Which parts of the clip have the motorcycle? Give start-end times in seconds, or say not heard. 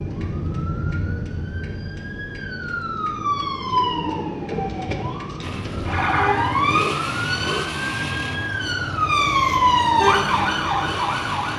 5.4-11.5.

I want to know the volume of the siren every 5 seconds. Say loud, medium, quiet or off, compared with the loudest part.
medium, loud, loud.